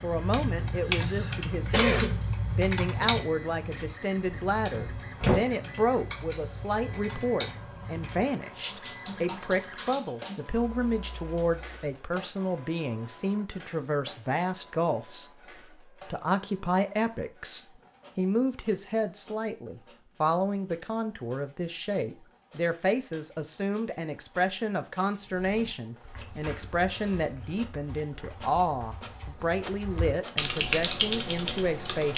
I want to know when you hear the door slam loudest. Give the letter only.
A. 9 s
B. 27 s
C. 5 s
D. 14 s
C.